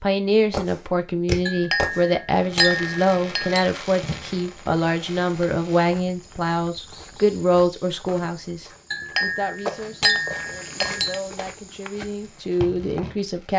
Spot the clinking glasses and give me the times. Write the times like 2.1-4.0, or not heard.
1.4-3.7, 8.9-11.2.